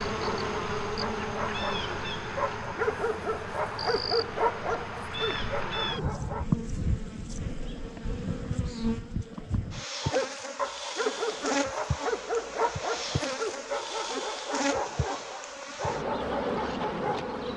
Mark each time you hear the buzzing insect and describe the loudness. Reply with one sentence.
You can hear the buzzing insect from 0.0 to 17.5 s, at a steady volume.